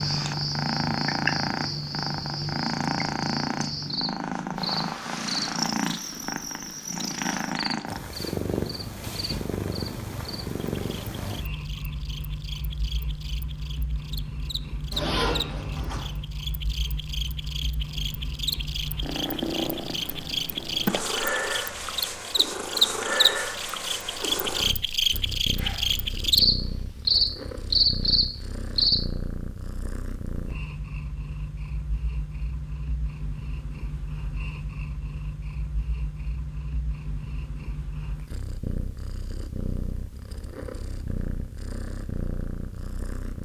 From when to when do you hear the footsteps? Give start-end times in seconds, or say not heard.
not heard.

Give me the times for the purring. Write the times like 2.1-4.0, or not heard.
0.0-43.4.